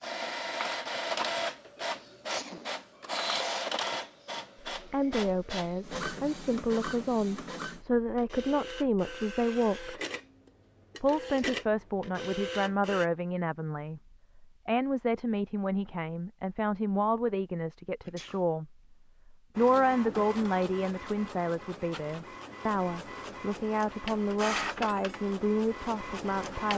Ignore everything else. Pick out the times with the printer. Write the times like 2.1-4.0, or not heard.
0.0-13.1, 19.6-26.7.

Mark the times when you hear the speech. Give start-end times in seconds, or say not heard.
4.7-10.0, 11.0-26.7.